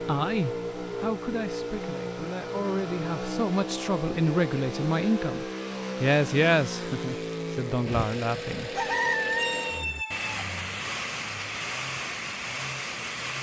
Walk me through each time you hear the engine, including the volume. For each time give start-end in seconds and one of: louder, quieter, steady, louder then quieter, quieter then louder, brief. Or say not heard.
0.0-13.3 steady.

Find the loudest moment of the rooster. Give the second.
9 s.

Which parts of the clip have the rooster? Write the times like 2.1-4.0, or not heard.
8.8-10.4.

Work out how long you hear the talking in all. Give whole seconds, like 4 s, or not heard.
9 s.